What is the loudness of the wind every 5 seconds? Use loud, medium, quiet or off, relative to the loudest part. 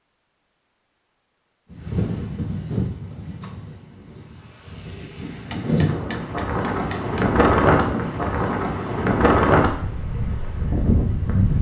medium, loud, loud.